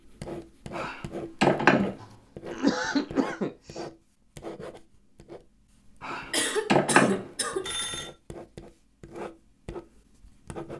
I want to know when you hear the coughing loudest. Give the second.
3 s.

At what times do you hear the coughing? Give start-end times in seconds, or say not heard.
2.0-3.8, 6.3-7.8.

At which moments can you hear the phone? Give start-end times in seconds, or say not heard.
0.8-1.9, 6.0-8.1.